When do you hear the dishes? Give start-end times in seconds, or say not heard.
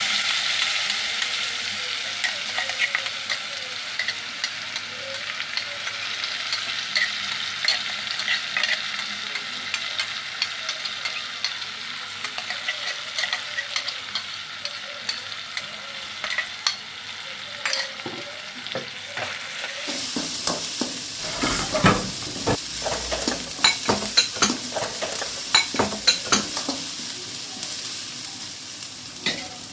21.2-26.4.